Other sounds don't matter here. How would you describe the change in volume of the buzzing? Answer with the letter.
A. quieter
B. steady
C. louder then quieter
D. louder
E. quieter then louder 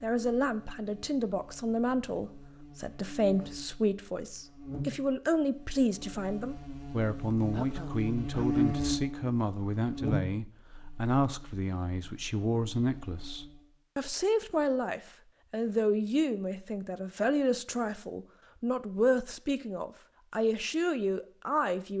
C.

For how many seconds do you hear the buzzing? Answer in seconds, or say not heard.
14 s.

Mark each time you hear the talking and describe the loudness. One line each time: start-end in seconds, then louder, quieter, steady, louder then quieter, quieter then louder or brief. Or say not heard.
0.0-21.9 steady.